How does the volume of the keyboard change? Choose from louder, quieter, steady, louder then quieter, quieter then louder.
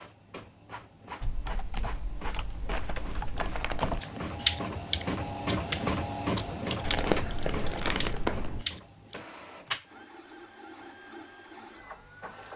louder then quieter.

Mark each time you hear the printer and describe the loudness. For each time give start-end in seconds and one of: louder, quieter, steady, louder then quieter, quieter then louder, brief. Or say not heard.
0.0-12.5 louder then quieter.